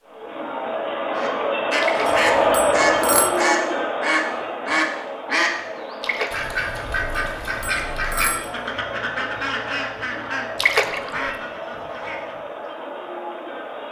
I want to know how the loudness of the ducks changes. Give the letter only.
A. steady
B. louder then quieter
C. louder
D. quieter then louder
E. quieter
E.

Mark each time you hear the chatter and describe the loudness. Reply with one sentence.
You can hear the chatter from 0.0 to 13.8 s, getting quieter.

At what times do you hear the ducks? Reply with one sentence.
You can hear the ducks from 1.1 to 12.7 s.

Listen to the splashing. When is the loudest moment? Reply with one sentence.
The loudest moment of the splashing is at 11 seconds.